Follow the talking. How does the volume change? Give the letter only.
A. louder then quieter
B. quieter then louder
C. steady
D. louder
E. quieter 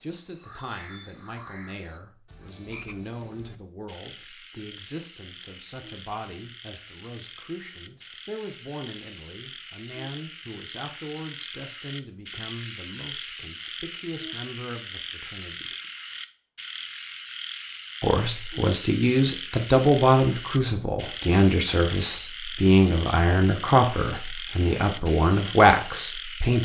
D.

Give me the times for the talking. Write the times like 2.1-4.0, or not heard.
0.0-15.8, 18.0-26.6.